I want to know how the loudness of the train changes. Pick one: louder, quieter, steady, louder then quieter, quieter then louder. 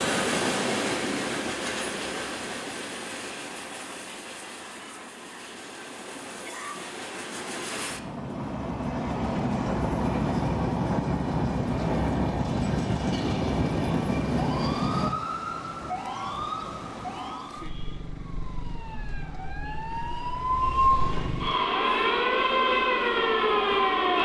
quieter then louder.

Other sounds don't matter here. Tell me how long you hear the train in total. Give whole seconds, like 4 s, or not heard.
15 s.